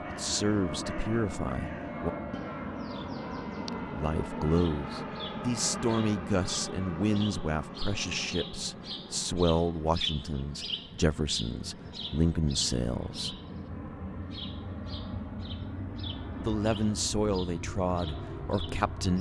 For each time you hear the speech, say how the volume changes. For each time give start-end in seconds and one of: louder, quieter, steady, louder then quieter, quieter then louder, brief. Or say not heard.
0.1-2.1 brief
3.9-13.3 steady
16.4-19.1 brief.